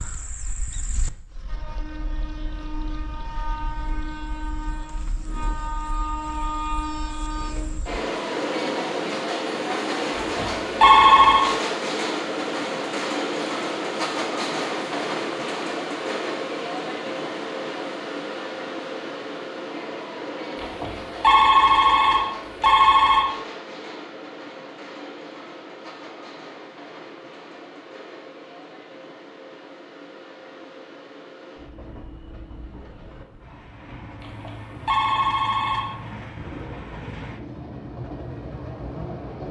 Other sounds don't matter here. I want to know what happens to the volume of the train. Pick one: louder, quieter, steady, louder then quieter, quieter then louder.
louder then quieter.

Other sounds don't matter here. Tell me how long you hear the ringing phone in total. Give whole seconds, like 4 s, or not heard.
6 s.